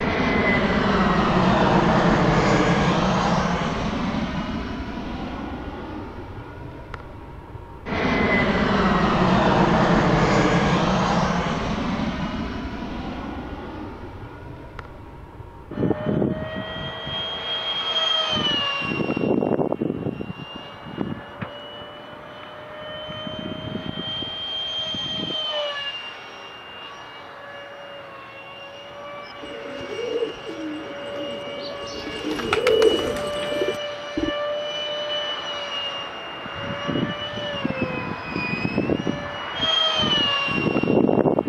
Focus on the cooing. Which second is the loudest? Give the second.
33 s.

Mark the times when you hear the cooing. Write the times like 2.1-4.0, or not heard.
29.2-34.3.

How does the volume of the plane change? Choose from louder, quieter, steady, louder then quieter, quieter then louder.
quieter then louder.